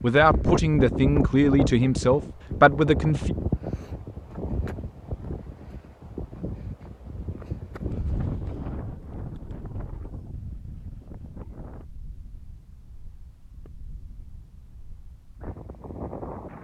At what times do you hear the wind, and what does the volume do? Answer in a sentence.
The wind can be heard from 0.0 to 16.5 s, getting quieter.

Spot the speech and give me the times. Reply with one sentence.
The speech can be heard from 0.0 to 3.4 s.